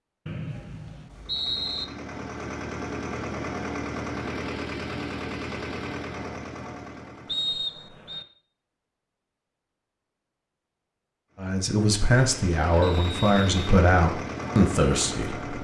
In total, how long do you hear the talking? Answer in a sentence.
You can hear the talking for 4 seconds altogether.